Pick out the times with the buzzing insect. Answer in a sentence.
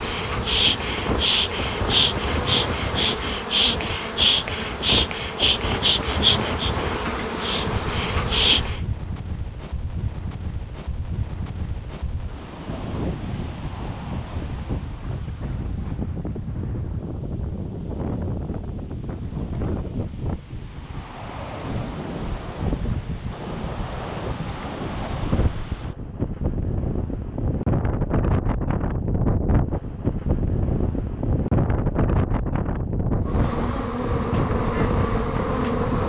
You can hear the buzzing insect from 0.0 to 8.8 s and from 33.2 to 36.0 s.